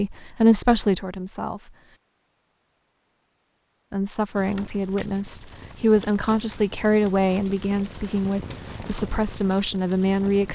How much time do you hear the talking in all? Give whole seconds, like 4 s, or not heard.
8 s.